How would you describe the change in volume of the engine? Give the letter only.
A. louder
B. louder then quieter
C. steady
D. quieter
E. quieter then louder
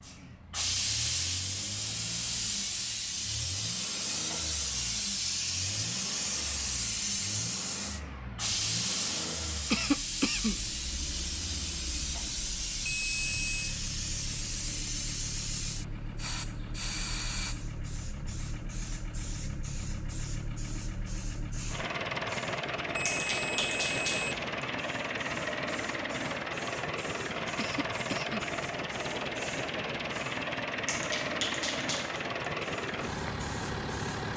A.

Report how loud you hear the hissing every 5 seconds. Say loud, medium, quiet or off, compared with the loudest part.
loud, loud, loud, medium, medium, quiet, medium.